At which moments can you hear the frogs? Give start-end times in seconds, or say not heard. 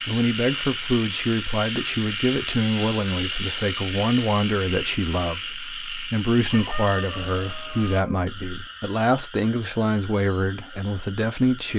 0.0-11.7.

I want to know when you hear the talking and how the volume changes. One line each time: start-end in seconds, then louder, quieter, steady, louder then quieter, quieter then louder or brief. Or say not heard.
0.0-11.7 steady.